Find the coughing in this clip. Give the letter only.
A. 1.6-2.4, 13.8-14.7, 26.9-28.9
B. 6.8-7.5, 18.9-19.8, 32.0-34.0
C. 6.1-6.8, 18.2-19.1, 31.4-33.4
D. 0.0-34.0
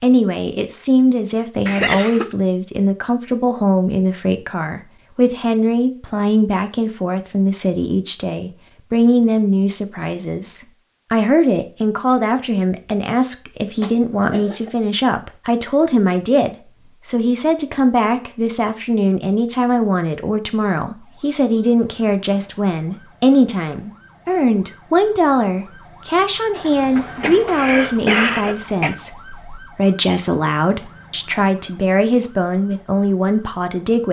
A.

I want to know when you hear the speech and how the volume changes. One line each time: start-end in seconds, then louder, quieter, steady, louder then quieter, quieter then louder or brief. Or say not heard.
0.0-34.0 steady.